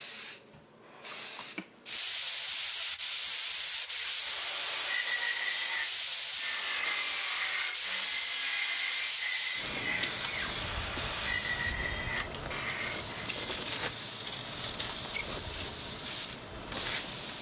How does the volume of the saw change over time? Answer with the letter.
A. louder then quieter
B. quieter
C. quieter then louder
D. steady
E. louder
D.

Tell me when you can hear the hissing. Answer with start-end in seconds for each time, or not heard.
0.0-17.3.